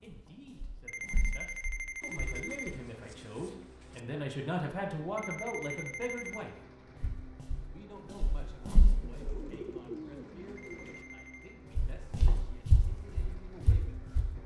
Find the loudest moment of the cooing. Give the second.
10 s.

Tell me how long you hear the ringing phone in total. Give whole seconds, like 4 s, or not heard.
4 s.